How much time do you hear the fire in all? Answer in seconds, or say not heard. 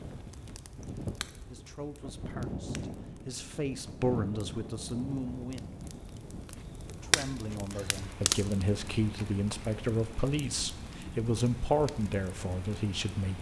13 s.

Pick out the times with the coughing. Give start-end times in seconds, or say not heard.
not heard.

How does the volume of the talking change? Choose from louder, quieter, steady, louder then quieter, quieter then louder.
louder.